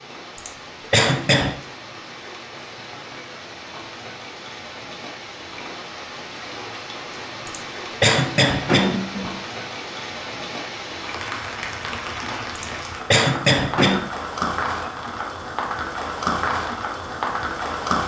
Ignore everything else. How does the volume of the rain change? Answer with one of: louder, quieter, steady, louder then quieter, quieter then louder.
louder.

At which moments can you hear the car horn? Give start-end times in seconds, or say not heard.
not heard.